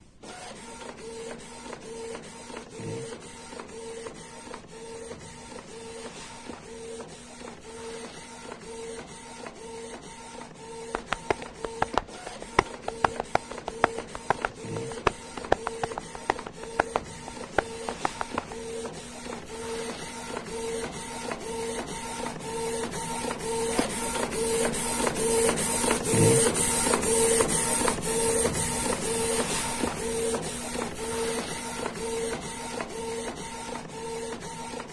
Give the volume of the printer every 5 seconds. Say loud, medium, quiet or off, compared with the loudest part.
quiet, quiet, quiet, quiet, medium, loud, medium.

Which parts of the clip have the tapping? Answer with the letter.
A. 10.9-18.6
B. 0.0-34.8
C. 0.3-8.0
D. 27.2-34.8
A.